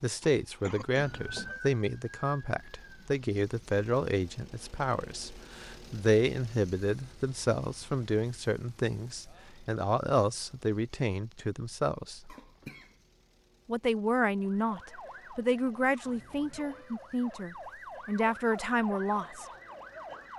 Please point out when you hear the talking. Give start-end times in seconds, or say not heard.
0.0-12.3, 13.7-19.4.